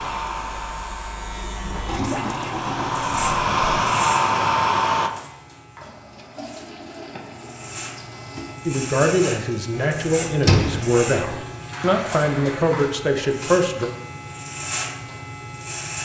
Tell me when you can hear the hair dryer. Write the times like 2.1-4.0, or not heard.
0.0-5.1.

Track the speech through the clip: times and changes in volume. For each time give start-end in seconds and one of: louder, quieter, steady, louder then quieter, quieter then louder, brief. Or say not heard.
8.7-13.9 steady.